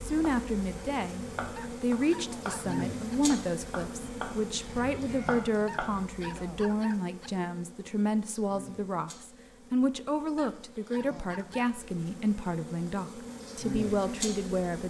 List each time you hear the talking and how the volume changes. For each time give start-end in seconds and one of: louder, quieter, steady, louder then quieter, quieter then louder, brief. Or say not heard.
0.0-14.8 steady.